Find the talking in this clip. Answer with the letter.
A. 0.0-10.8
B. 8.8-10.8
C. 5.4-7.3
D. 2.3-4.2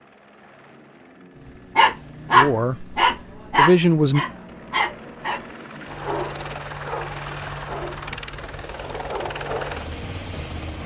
D.